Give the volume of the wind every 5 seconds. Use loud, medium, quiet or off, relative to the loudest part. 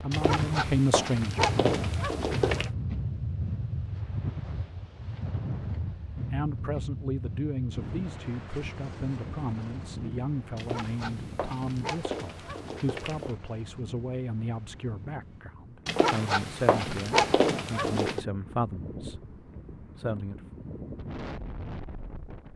loud, loud, medium, medium, medium.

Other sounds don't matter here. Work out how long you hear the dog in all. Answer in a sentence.
The dog can be heard for 8 seconds in total.